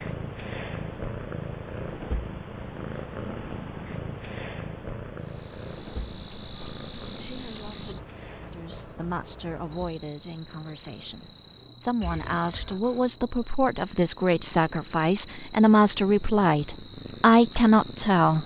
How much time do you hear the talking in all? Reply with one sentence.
The talking can be heard for 10 seconds in total.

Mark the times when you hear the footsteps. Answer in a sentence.
The footsteps can't be heard in this clip.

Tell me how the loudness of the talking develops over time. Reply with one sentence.
The volume of the talking goes up.